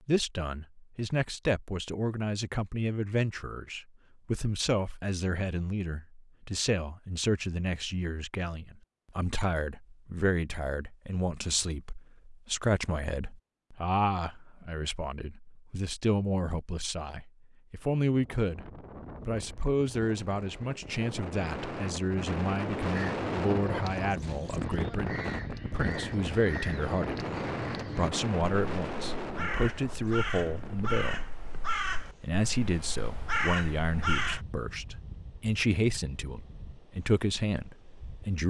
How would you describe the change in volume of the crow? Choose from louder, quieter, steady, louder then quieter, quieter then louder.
louder.